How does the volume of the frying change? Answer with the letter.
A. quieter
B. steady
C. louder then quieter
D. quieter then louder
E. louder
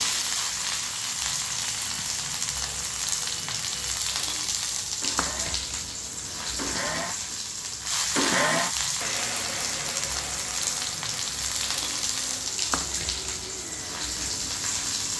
B.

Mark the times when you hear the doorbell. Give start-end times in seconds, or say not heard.
not heard.